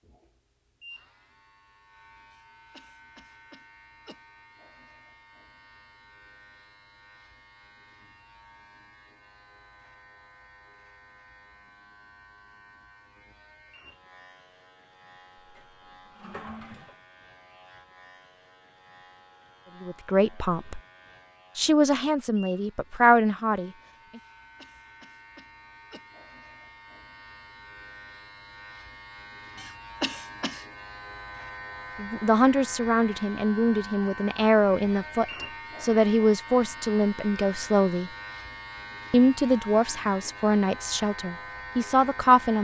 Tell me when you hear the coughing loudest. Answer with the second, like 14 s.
30 s.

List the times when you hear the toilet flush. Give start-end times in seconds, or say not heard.
15.3-16.9.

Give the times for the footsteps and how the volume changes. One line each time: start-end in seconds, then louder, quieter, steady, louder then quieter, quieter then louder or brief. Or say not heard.
not heard.